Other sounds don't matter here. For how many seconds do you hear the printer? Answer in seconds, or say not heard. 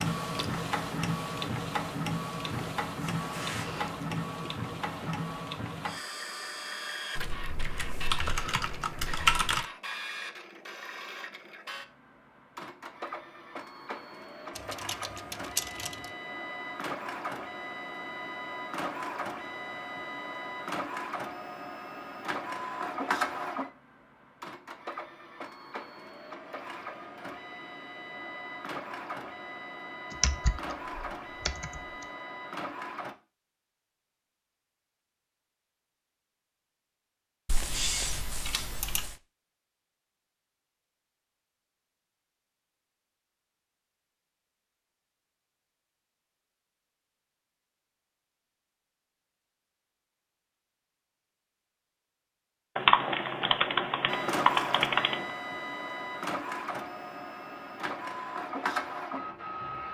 39 s.